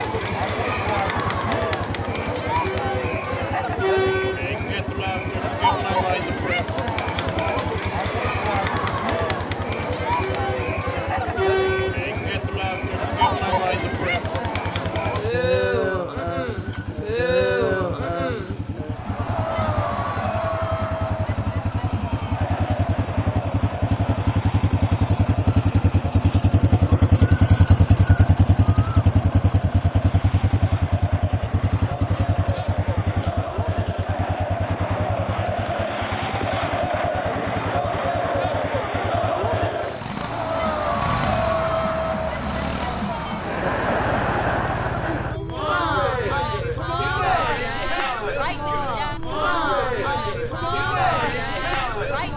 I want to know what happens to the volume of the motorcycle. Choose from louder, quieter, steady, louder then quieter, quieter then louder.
louder then quieter.